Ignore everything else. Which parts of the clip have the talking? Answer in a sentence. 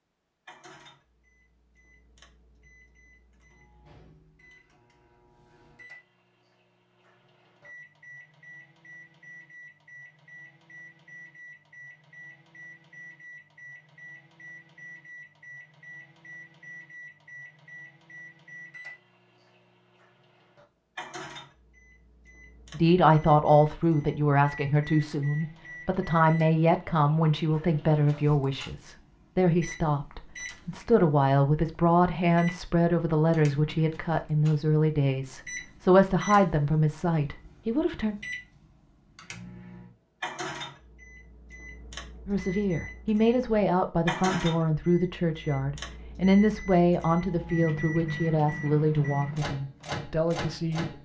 The talking can be heard from 22.7 to 38.1 s and from 42.2 to 50.9 s.